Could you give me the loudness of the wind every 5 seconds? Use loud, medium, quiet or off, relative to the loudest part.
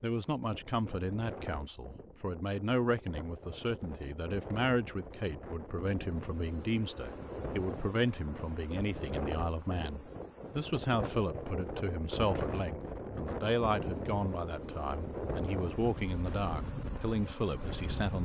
medium, loud, loud, loud.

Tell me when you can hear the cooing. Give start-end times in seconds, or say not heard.
not heard.